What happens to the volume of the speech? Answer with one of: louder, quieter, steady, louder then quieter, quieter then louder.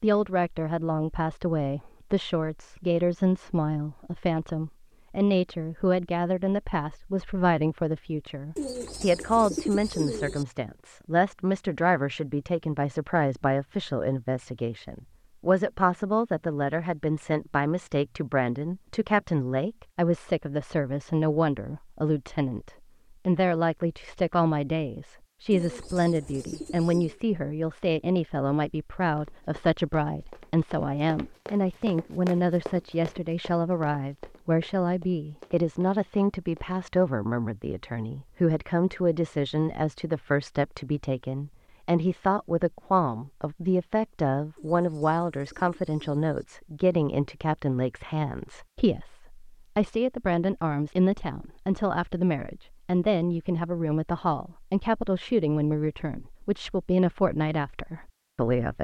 steady.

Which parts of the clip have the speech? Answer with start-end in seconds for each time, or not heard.
0.0-58.8.